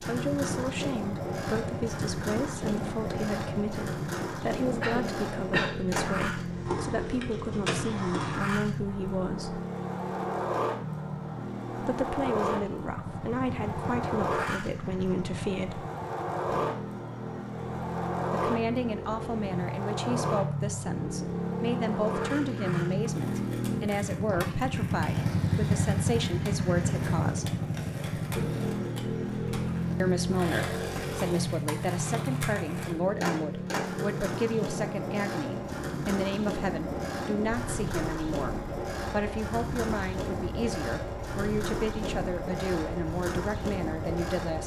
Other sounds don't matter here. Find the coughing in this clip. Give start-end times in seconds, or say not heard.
4.8-5.8.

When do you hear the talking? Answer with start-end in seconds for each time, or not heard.
0.0-9.6, 11.8-15.9, 18.4-27.6, 30.0-44.6.